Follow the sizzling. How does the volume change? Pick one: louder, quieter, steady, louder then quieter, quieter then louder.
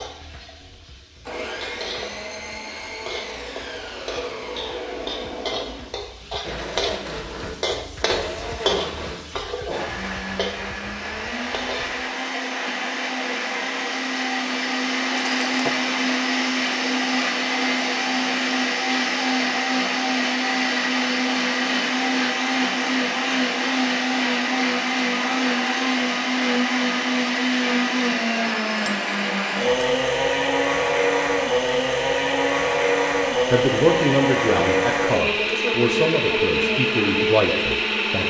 louder then quieter.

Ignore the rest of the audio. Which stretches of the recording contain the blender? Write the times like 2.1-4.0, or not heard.
0.0-38.2.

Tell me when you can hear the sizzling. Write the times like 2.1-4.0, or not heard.
0.0-12.1.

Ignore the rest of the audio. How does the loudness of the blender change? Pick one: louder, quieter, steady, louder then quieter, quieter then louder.
louder.